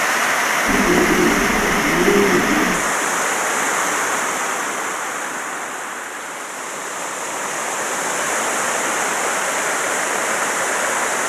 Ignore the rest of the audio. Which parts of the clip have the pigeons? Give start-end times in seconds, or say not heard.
0.7-2.9.